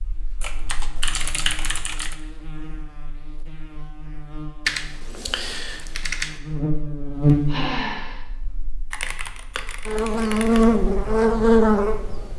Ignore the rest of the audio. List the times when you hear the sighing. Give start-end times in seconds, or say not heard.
7.5-8.2.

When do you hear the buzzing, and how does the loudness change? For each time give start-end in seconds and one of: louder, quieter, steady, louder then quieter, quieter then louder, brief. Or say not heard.
0.0-12.3 louder.